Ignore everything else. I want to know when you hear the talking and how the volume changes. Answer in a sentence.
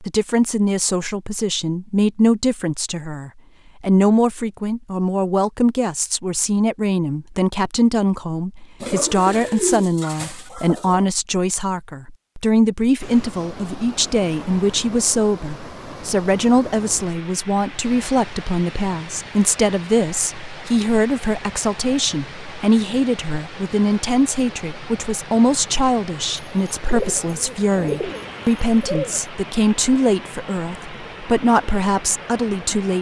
The talking can be heard from 0.0 to 32.9 s, at a steady volume.